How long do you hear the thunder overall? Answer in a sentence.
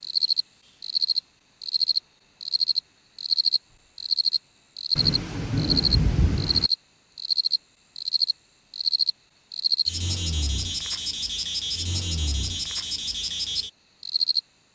The thunder can be heard for 2 seconds in total.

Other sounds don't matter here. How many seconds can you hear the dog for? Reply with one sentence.
You can't hear the dog here.